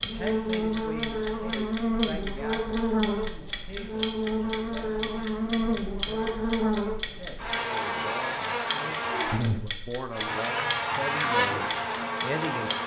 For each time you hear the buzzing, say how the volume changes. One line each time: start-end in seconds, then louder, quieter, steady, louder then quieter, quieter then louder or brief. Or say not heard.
0.0-12.8 steady.